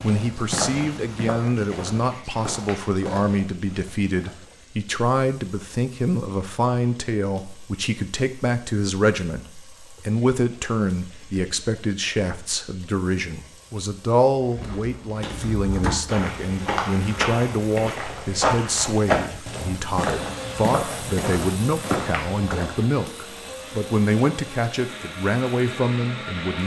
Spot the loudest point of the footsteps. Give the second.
19 s.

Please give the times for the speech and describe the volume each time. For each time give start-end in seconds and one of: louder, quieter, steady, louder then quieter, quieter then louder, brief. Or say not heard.
0.0-26.6 steady.